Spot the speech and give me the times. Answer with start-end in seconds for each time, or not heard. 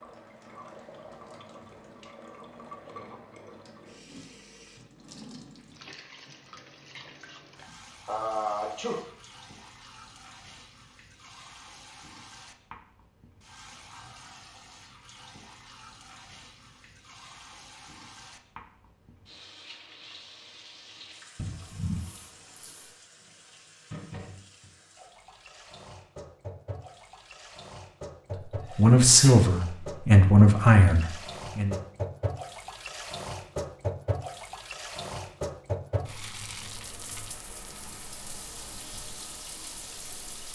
28.8-31.8.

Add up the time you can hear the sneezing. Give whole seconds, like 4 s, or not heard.
4 s.